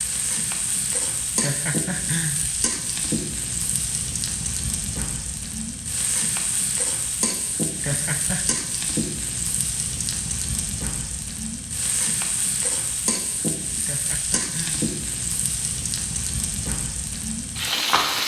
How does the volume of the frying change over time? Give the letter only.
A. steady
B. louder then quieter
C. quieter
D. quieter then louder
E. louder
A.